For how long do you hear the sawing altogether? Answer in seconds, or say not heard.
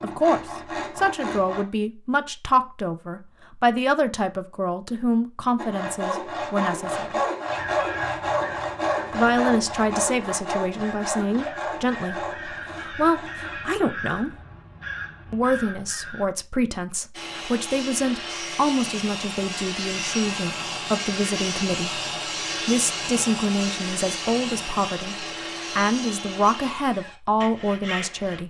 21 s.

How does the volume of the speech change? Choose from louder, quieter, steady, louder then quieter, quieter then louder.
steady.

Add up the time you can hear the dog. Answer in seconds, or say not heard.
not heard.